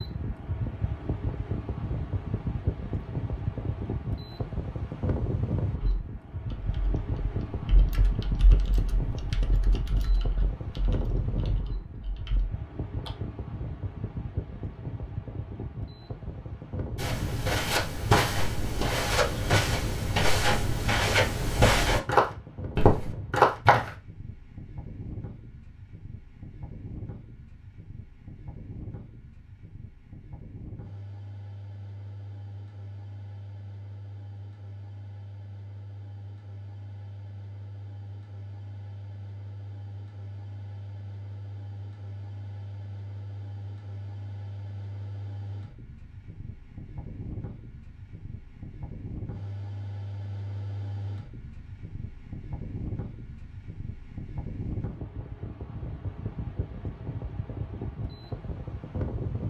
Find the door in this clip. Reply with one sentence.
You can't hear the door here.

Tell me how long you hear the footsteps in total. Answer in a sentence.
The footsteps can be heard for 7 seconds in total.